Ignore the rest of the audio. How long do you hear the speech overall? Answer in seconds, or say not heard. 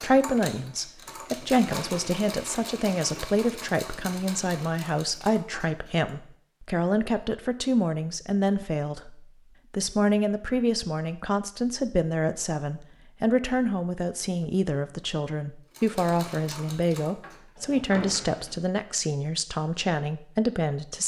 21 s.